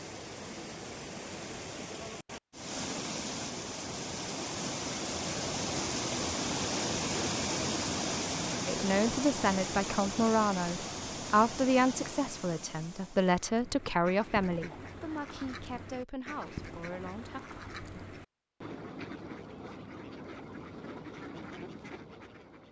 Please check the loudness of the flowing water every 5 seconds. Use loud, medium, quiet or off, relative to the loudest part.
medium, loud, medium, off, off.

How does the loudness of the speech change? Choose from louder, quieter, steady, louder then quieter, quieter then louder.
quieter.